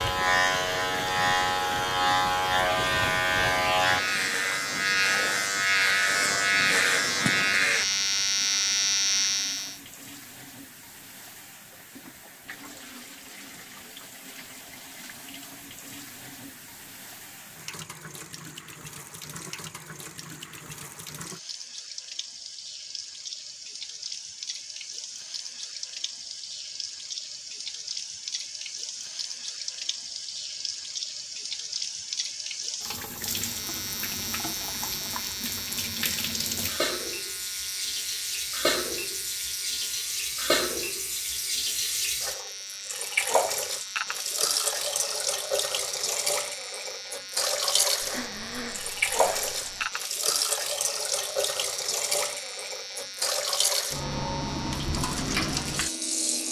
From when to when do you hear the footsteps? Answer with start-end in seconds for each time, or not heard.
not heard.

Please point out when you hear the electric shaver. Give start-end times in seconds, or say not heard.
0.0-9.8, 33.4-56.4.